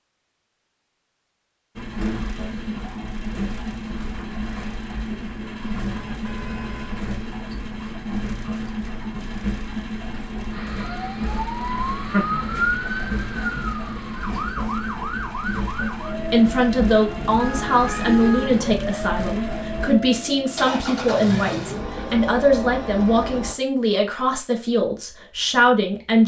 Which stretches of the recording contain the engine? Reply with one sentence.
You can hear the engine from 1.8 to 23.6 s.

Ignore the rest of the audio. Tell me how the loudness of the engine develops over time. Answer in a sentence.
The loudness of the engine stays about the same.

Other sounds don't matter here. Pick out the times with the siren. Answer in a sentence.
You can hear the siren from 10.5 to 23.4 s.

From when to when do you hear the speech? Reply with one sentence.
The speech can be heard from 16.1 to 26.2 s.